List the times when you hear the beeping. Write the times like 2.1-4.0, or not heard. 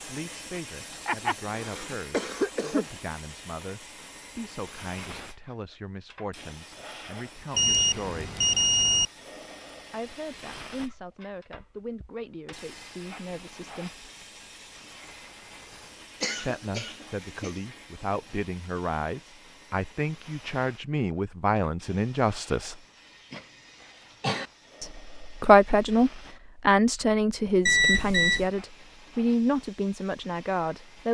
7.5-9.1, 27.6-28.5.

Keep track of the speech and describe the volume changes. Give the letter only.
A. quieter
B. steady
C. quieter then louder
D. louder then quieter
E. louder
E.